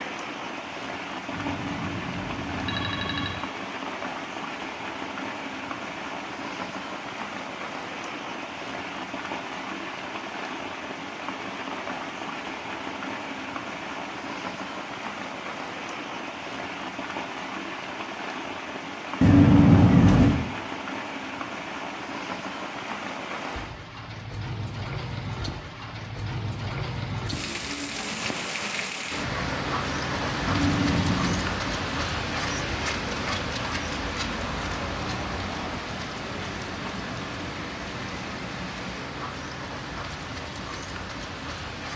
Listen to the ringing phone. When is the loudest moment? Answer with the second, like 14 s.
20 s.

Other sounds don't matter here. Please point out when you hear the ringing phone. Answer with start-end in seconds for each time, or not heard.
1.3-3.4, 19.2-20.4, 30.4-31.5.